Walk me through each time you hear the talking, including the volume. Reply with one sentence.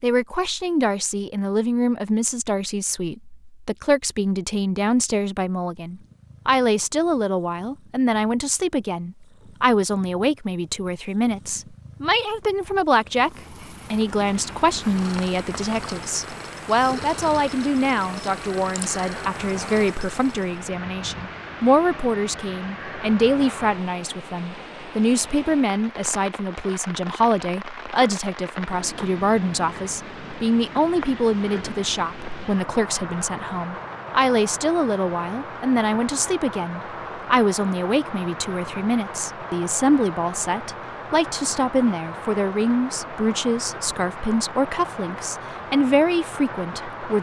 The talking can be heard from 0.0 to 47.1 s, at a steady volume.